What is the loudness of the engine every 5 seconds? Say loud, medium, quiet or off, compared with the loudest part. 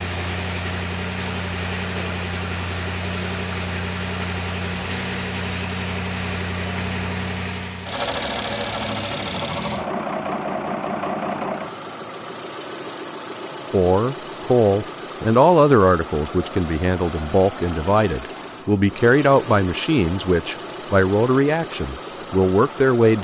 loud, loud, loud, medium, medium.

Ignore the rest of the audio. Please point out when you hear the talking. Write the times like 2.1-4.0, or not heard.
13.7-23.1.